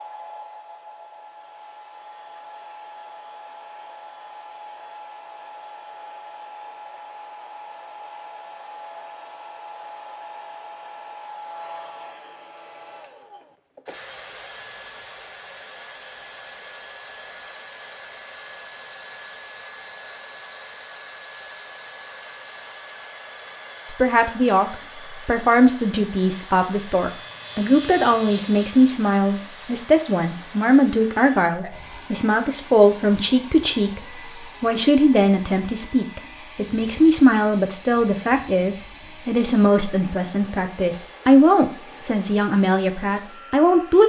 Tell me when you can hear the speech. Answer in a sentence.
The speech can be heard from 23.9 to 34.0 s and from 34.6 to 44.0 s.